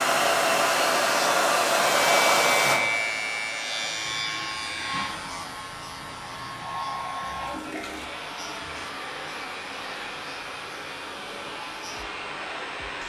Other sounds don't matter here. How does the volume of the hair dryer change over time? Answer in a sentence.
The volume of the hair dryer goes down.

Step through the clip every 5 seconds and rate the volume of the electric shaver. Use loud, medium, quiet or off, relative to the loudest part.
loud, quiet, quiet.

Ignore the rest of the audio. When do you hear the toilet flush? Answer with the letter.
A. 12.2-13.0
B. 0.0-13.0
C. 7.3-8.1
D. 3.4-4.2
C.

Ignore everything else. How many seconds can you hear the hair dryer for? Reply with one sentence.
The hair dryer can be heard for 13 seconds in total.